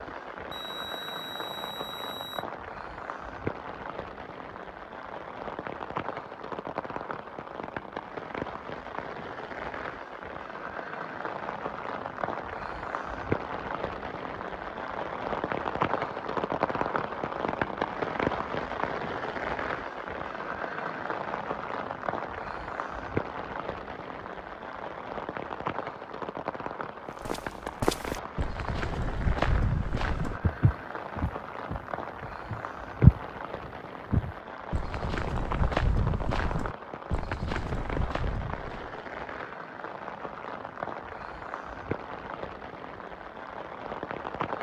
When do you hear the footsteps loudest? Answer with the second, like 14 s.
33 s.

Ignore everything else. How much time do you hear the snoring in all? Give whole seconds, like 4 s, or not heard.
not heard.